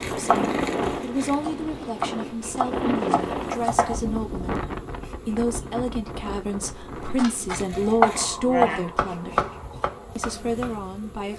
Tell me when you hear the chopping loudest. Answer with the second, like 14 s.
8 s.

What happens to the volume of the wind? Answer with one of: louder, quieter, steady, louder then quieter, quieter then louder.
quieter.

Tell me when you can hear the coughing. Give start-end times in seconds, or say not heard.
not heard.